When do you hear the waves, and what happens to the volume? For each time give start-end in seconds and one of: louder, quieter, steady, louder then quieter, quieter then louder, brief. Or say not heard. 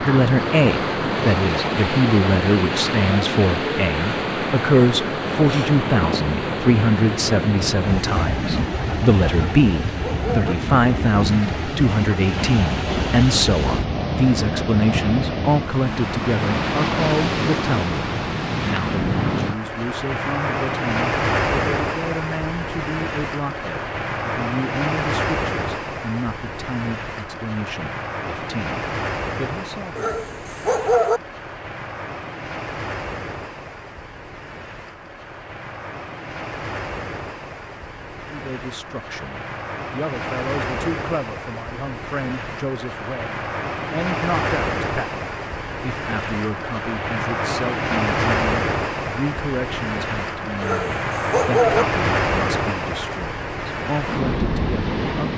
0.0-55.3 quieter then louder.